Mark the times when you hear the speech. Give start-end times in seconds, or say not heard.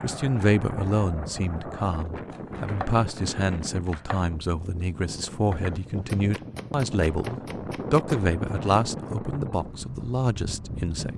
0.0-11.1.